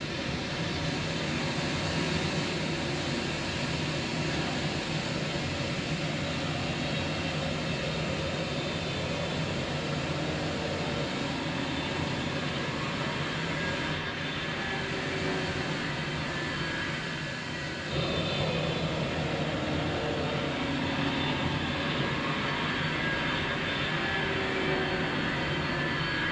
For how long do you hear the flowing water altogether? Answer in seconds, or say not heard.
26 s.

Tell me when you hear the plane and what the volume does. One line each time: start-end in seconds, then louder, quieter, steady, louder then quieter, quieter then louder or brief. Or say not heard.
0.0-26.2 louder.